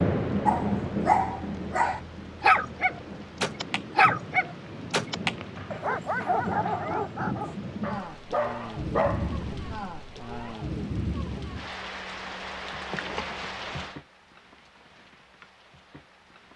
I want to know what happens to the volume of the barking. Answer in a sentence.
The volume of the barking goes down.